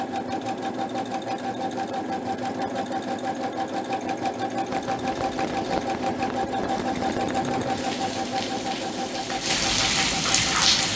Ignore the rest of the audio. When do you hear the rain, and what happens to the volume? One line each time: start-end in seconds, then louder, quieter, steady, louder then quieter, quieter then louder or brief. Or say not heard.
4.6-10.9 louder.